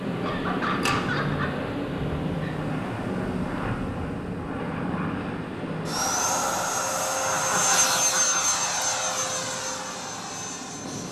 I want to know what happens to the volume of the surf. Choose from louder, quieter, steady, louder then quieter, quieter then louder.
quieter.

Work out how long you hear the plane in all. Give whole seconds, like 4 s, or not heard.
11 s.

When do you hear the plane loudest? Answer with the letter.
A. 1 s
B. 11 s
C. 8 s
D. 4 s
C.